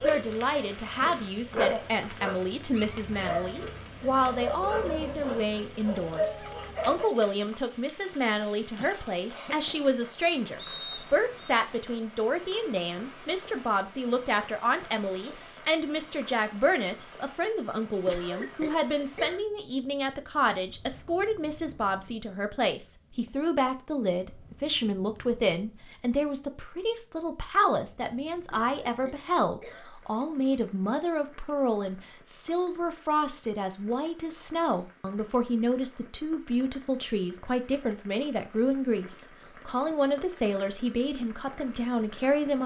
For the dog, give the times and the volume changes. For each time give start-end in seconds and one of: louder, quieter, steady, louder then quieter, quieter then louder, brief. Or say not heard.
0.0-7.1 steady.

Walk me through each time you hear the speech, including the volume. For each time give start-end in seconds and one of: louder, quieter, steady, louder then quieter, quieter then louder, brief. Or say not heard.
0.0-42.6 steady.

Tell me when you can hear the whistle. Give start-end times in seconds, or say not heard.
10.6-11.6.